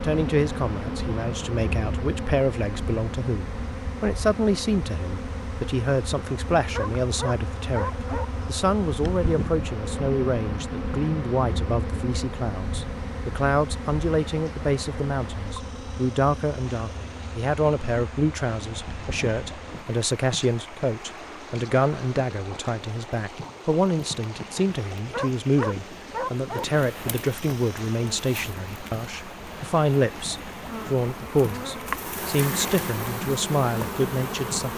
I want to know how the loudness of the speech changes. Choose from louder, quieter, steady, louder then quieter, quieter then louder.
steady.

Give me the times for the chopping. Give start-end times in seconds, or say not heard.
not heard.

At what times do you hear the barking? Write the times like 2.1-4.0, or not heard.
6.7-8.2, 25.1-26.6.